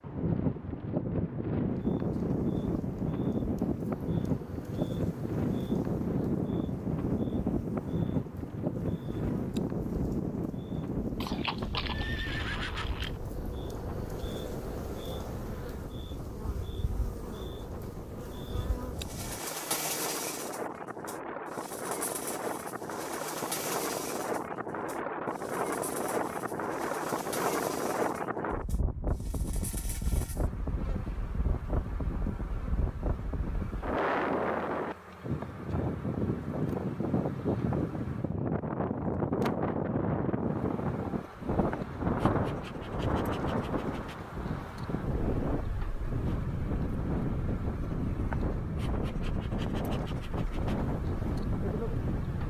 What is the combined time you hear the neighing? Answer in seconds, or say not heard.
2 s.